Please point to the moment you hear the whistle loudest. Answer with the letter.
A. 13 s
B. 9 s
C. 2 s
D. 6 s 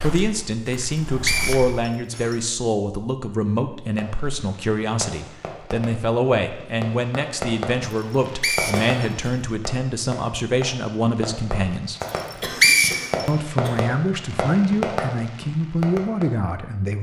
A.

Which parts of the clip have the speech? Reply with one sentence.
The speech can be heard from 0.0 to 12.0 s and from 13.2 to 16.9 s.